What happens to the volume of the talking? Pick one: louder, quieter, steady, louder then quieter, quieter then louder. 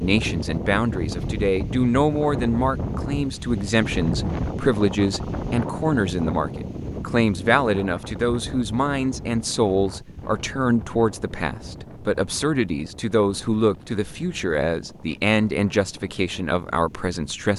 steady.